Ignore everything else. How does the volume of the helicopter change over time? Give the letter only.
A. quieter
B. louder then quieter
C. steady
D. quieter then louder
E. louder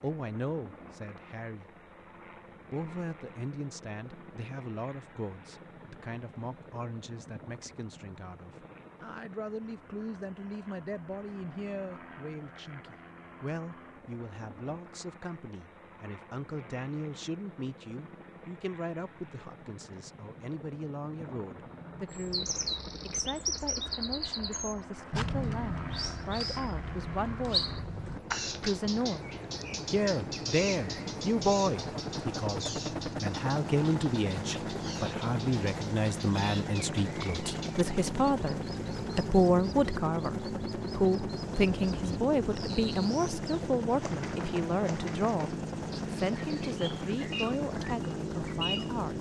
E.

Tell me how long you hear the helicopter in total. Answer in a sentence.
You can hear the helicopter for 49 seconds altogether.